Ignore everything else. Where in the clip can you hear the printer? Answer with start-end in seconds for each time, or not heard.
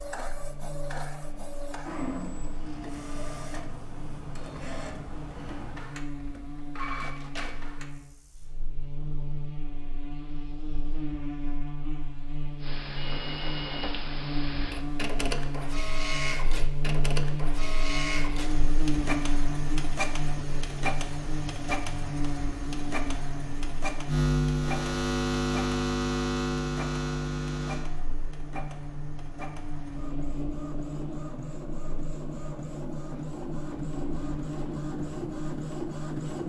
0.0-7.9, 12.6-36.4.